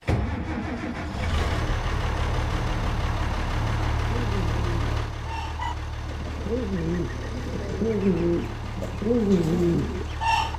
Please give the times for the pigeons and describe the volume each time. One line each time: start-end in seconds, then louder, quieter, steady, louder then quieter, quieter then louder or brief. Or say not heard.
4.0-10.5 louder.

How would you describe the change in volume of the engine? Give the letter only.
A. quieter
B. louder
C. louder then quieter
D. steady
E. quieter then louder
A.